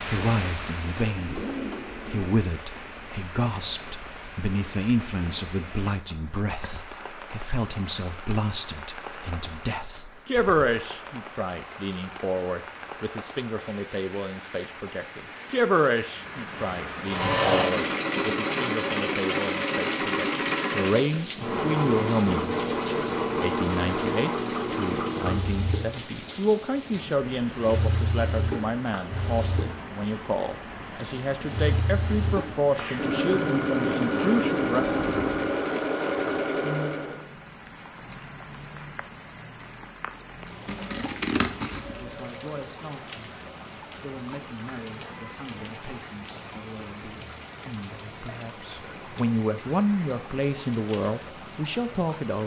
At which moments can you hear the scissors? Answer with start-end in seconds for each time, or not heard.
40.6-42.1.